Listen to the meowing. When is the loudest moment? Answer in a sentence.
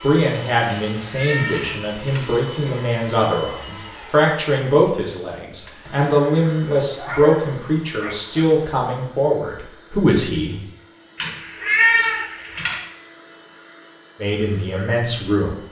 The loudest moment of the meowing is at 12 seconds.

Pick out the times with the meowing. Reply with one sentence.
The meowing can be heard from 0.7 to 2.2 s and from 11.2 to 12.8 s.